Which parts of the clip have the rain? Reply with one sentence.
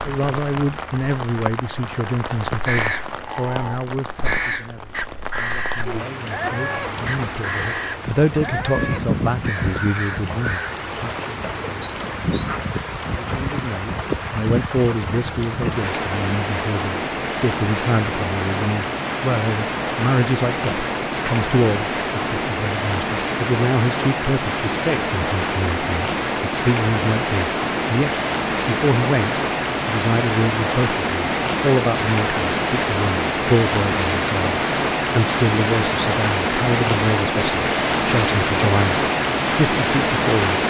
The rain can be heard from 0.0 to 40.6 s.